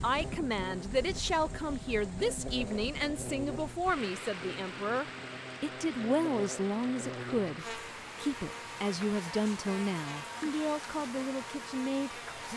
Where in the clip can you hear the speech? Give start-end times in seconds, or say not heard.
0.0-12.5.